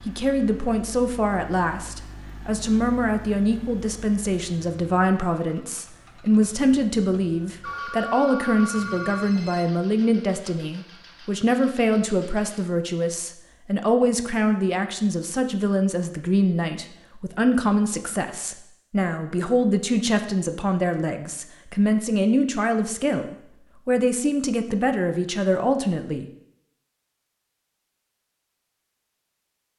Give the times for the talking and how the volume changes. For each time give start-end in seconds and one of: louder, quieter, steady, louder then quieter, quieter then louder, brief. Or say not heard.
0.1-26.2 steady.